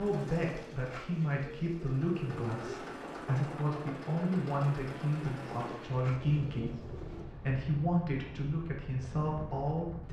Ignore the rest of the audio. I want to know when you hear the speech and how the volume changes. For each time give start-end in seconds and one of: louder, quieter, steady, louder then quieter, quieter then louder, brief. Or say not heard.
0.0-10.0 steady.